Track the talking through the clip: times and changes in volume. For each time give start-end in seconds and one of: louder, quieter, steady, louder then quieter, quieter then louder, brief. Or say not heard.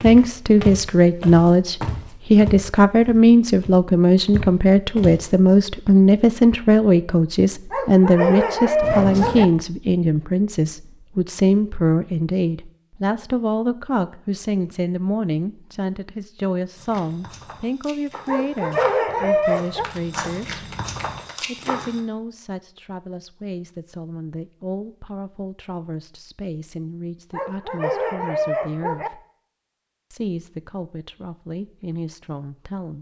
0.0-20.6 quieter
21.4-29.2 steady
30.1-32.9 brief.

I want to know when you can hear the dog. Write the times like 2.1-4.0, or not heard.
7.7-9.4, 18.2-19.9, 27.3-29.1.